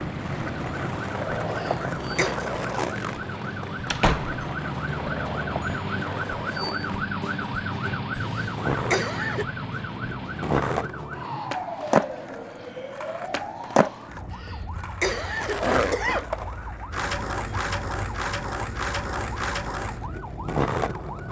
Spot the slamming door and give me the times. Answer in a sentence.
You can hear the slamming door from 3.9 to 4.4 s.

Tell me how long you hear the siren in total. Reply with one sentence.
The siren can be heard for 21 seconds in total.